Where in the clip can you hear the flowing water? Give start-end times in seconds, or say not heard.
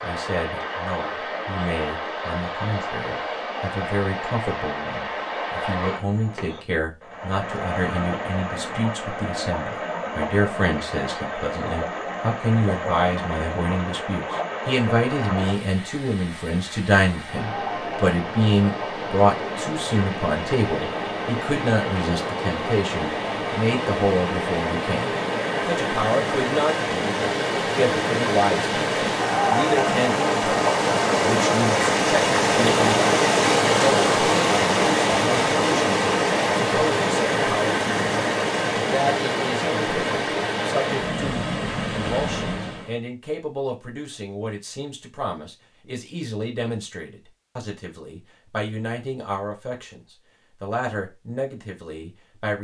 0.0-43.0.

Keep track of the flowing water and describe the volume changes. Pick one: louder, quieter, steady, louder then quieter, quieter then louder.
louder.